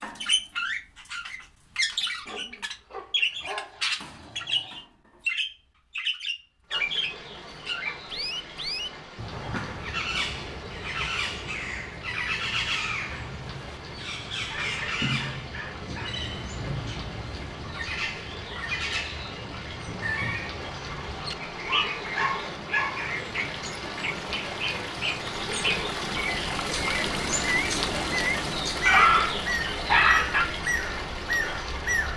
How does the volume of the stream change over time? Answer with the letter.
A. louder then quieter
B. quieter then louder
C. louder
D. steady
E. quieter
C.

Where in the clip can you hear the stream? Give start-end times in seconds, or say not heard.
6.7-32.1.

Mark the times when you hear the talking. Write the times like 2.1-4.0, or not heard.
not heard.